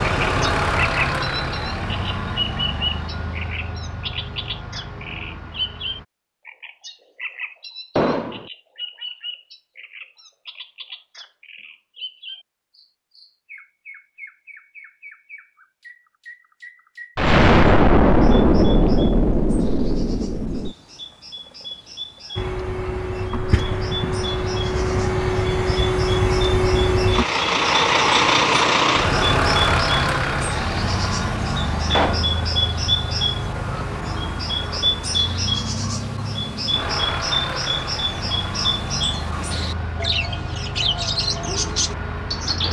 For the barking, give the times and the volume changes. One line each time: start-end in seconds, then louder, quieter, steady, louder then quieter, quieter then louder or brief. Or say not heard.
not heard.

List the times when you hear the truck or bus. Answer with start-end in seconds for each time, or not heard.
0.0-6.0, 22.4-42.6.